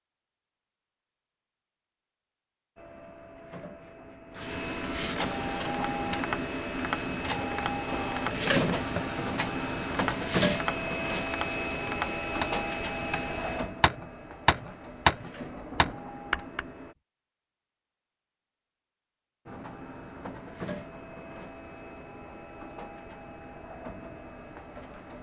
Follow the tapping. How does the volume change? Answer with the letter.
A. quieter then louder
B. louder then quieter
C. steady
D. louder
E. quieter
D.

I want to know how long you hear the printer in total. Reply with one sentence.
You can hear the printer for 20 seconds altogether.